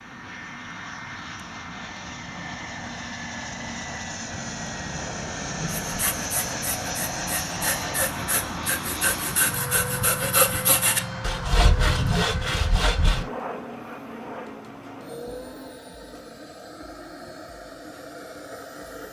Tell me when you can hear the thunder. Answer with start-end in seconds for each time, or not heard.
4.3-6.1.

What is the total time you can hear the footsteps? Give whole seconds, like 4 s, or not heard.
not heard.